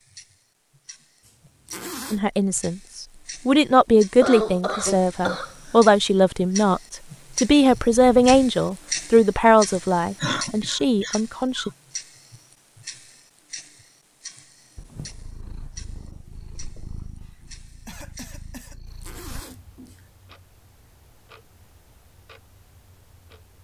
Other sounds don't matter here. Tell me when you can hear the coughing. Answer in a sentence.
The coughing can be heard from 4.2 to 5.8 s, from 10.2 to 11.7 s and from 17.2 to 18.9 s.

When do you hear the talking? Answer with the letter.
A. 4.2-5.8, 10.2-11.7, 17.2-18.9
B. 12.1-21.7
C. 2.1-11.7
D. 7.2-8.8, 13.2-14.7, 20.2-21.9
C.